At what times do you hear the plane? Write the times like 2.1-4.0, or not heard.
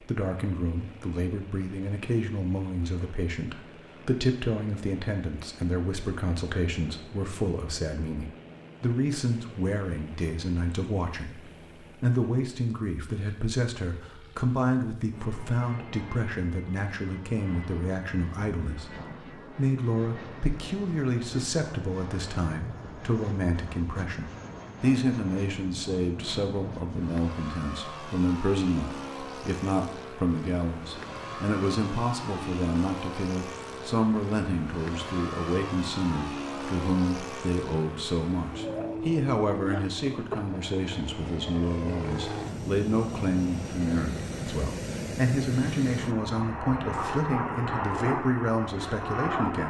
0.0-49.6.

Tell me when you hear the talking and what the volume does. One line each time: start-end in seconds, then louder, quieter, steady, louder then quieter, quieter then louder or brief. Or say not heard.
0.1-49.6 steady.